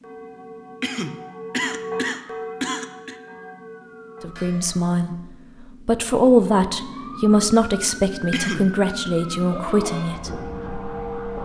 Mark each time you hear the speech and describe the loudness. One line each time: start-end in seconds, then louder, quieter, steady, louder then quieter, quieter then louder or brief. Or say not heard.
4.2-5.2 brief
5.8-10.3 quieter.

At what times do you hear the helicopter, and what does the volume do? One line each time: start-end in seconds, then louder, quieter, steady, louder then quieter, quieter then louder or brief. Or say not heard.
not heard.